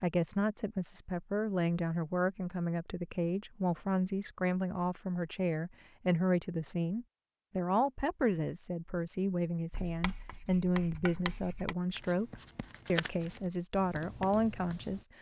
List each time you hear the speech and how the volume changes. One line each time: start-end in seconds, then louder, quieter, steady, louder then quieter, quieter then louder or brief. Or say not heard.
0.0-15.1 steady.